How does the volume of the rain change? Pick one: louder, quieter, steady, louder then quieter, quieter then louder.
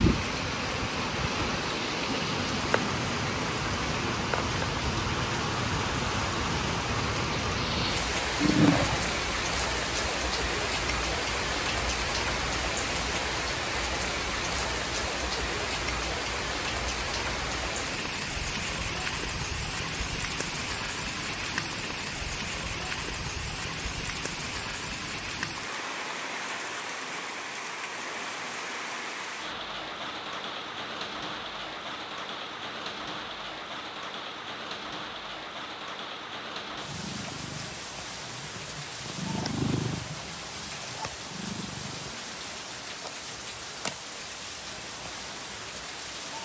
quieter.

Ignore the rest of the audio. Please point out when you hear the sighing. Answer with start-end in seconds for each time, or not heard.
7.6-9.2.